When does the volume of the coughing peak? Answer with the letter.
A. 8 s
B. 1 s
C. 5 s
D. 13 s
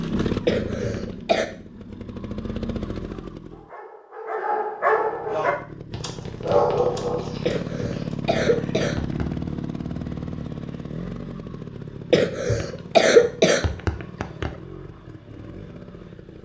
D.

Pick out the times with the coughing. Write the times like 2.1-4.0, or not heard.
0.5-1.4, 7.5-9.3, 12.1-14.5.